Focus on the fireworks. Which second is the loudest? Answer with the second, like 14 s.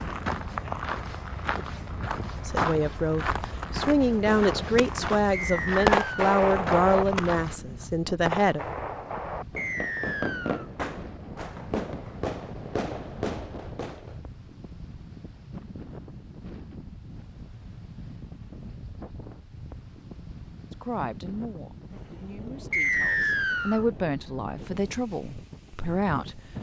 6 s.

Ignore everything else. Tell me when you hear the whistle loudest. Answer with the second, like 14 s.
23 s.